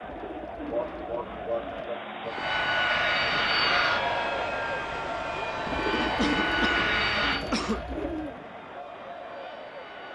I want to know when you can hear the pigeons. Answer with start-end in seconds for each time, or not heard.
0.0-1.9, 5.7-8.4.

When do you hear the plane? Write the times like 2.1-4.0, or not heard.
2.2-10.1.